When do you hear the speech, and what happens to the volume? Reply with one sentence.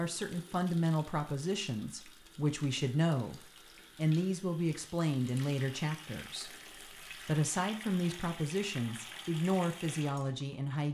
The speech can be heard from 0.0 to 10.8 s, at a steady volume.